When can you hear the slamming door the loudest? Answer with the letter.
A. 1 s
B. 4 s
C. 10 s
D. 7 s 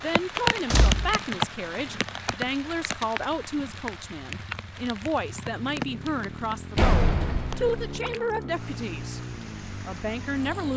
D.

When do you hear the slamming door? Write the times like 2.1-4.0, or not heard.
0.7-1.1, 6.8-7.8.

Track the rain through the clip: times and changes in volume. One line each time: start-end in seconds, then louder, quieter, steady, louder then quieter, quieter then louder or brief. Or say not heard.
0.0-10.7 quieter.